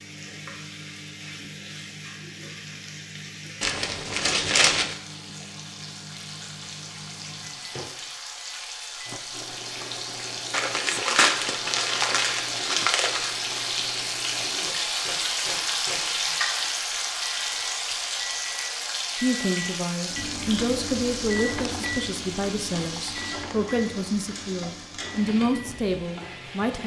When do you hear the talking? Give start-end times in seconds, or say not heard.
19.1-26.8.